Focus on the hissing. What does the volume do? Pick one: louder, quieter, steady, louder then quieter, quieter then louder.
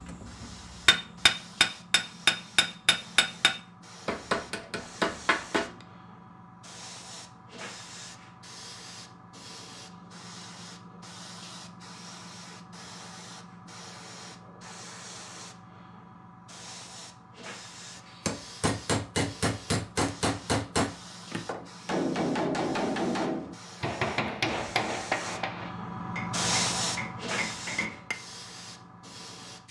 louder.